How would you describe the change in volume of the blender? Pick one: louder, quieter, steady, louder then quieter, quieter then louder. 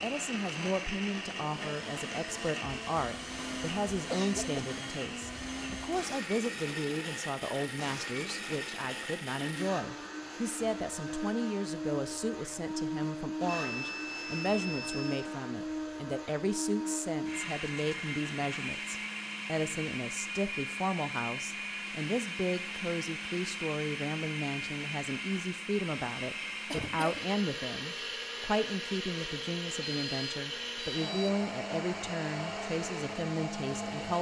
steady.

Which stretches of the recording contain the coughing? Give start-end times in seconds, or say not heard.
4.0-4.9, 26.6-27.2.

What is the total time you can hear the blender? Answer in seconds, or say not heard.
34 s.